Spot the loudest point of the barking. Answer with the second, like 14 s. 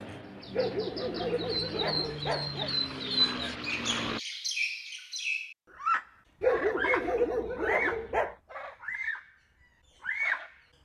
7 s.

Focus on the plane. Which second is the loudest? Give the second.
4 s.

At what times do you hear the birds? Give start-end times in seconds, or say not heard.
0.0-9.3, 10.0-10.6.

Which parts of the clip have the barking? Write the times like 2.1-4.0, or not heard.
0.5-2.7, 6.4-8.3.